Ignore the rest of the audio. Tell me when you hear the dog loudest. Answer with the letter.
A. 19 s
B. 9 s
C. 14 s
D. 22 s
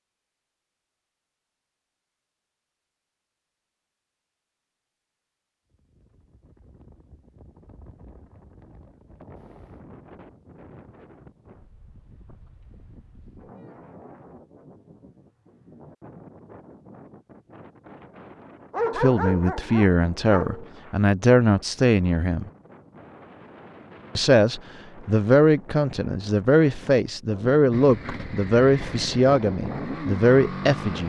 A.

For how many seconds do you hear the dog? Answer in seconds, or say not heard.
2 s.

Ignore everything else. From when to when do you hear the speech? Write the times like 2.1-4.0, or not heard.
18.9-22.5, 24.1-31.0.